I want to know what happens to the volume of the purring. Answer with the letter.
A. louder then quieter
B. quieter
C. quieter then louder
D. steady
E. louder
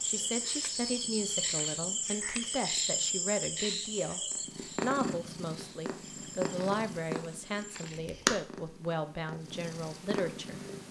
A.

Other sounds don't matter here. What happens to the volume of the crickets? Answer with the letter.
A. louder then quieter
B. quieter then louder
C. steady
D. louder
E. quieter
E.